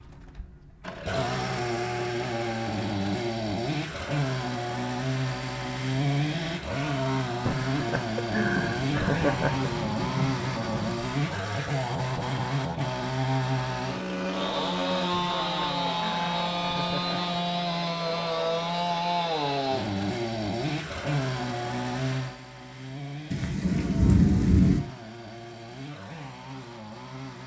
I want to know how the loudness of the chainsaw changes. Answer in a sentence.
The loudness of the chainsaw goes down.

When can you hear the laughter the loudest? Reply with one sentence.
The loudest moment of the laughter is at 9 seconds.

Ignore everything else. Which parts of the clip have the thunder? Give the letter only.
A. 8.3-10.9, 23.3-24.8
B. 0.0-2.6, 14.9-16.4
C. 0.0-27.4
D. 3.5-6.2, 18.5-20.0
A.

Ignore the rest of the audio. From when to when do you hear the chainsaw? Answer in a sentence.
You can hear the chainsaw from 0.0 to 27.4 s.